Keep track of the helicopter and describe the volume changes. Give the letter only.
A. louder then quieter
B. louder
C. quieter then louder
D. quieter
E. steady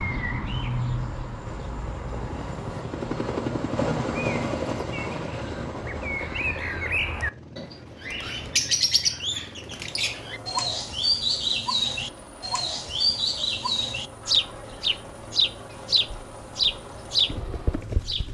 D.